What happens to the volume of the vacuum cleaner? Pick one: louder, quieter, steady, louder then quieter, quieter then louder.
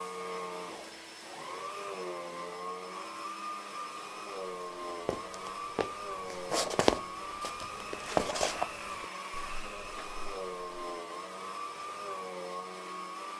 steady.